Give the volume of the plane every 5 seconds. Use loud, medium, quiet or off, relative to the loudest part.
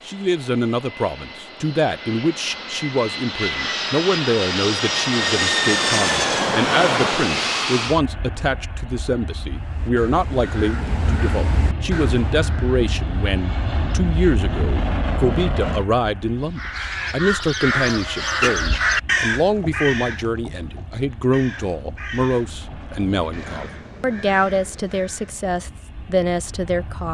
medium, loud, medium, medium, quiet, quiet.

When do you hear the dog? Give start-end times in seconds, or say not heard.
not heard.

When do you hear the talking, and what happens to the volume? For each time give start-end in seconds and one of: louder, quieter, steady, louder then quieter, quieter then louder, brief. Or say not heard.
0.1-27.0 steady.